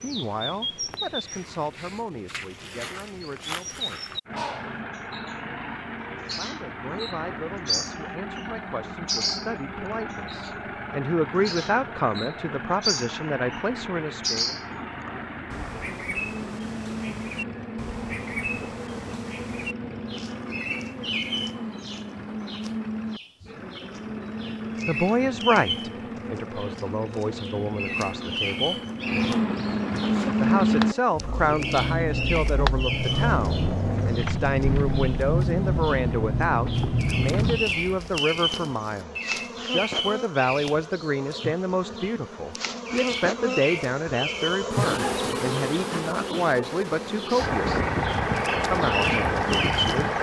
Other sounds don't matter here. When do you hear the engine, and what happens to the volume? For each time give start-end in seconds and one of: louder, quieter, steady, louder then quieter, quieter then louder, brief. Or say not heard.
4.2-37.6 louder
47.4-50.1 brief.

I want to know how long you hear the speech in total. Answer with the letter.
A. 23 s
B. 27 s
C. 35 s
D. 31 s
C.